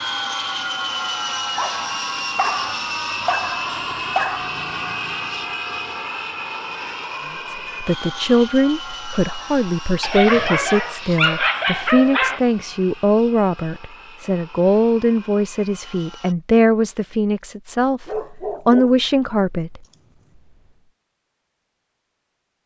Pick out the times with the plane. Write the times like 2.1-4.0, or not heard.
0.0-16.4.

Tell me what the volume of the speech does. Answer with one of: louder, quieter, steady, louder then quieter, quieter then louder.
steady.